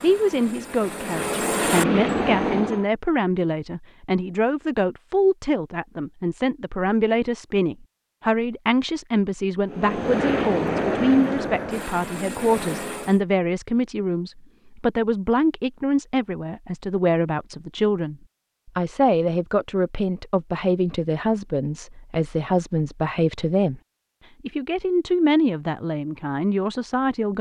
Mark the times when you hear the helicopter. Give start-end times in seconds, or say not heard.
0.0-2.9, 9.7-13.2.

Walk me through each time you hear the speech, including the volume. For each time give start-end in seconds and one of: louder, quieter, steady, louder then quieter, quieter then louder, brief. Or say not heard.
0.0-23.8 steady
24.4-27.3 brief.